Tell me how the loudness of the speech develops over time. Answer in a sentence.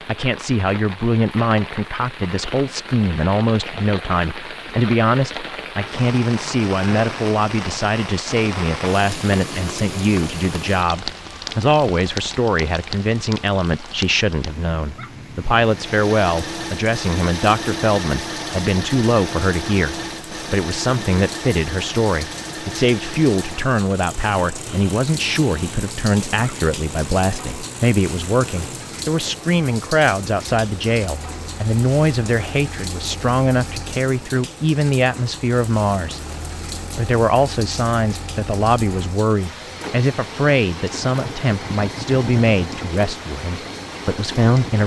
The loudness of the speech stays about the same.